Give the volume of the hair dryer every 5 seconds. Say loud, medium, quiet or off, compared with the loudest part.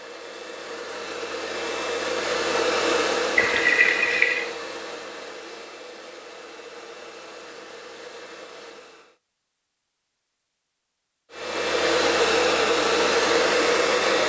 medium, quiet, loud.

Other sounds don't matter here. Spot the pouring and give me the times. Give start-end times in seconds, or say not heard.
3.4-4.5.